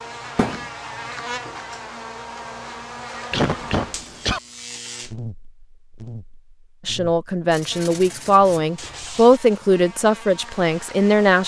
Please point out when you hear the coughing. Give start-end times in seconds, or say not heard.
3.3-4.4.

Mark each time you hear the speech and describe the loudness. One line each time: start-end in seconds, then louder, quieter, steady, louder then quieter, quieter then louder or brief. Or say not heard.
6.8-11.4 louder then quieter.